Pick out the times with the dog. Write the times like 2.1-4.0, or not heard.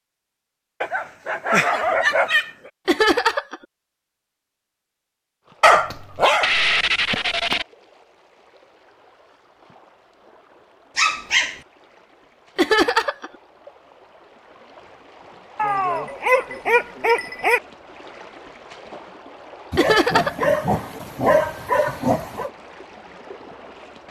0.8-2.7, 5.6-7.7, 10.9-11.6, 15.6-17.6, 19.7-22.5.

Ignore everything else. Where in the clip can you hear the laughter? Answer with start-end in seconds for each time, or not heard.
2.9-3.5, 12.6-13.3, 19.8-20.4.